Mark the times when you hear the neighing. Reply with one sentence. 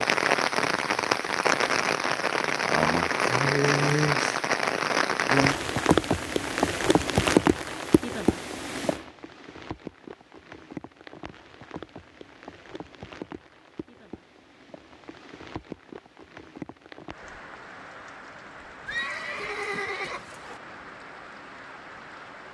You can hear the neighing from 18.9 to 20.6 s.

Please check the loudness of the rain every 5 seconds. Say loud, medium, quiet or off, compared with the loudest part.
loud, loud, quiet, quiet, quiet.